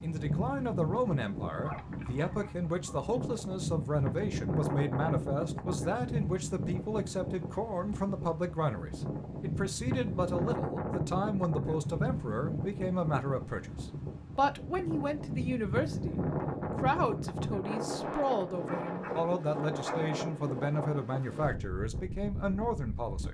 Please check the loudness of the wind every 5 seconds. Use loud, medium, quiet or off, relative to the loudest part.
loud, loud, loud, loud, medium.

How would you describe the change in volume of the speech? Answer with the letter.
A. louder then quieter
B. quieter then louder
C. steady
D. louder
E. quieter
C.